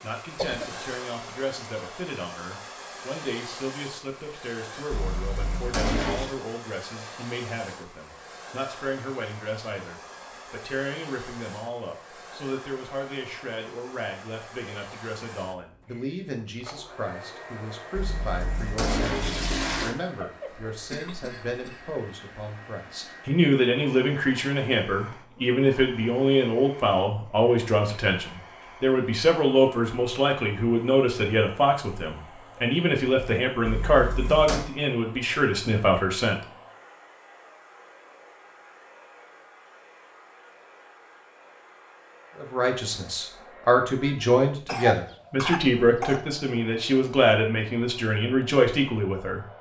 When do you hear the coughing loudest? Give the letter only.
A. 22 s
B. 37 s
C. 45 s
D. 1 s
C.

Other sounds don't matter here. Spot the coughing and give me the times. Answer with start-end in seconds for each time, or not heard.
0.3-0.9, 20.7-21.9, 44.6-46.2.